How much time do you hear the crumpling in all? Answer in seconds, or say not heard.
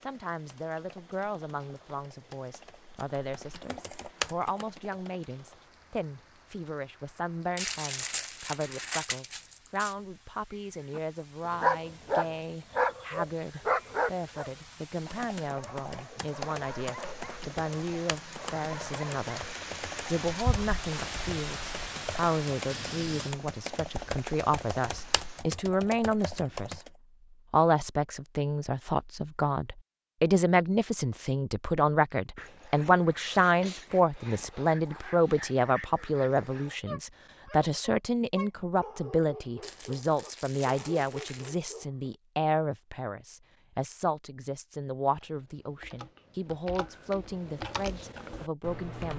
4 s.